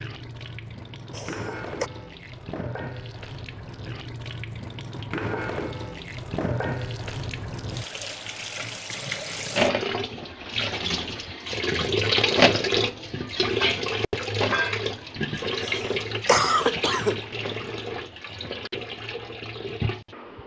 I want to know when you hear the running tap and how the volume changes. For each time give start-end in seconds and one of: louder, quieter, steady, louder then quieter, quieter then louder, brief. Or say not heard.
0.0-20.4 louder then quieter.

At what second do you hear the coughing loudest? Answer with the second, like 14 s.
16 s.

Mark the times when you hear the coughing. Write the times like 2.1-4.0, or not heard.
1.1-1.9, 15.6-17.2.